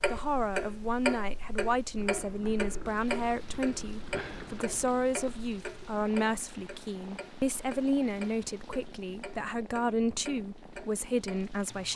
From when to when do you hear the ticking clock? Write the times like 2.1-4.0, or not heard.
0.0-11.9.